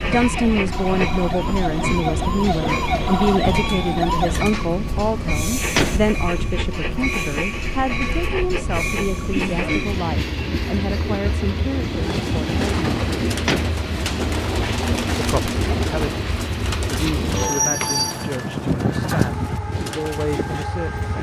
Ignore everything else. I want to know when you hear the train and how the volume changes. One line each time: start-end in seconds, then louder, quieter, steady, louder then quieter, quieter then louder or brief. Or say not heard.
0.0-21.1 steady.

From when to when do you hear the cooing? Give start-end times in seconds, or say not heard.
11.8-20.6.